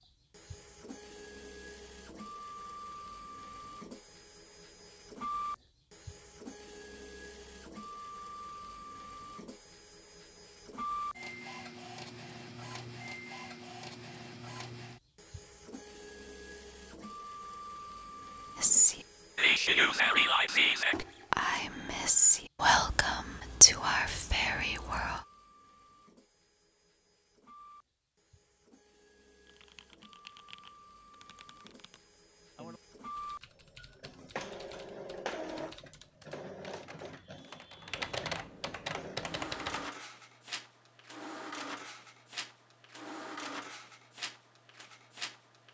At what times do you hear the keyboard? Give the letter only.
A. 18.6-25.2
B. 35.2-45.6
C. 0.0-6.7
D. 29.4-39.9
D.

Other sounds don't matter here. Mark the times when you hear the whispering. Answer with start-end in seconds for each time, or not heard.
18.6-25.2.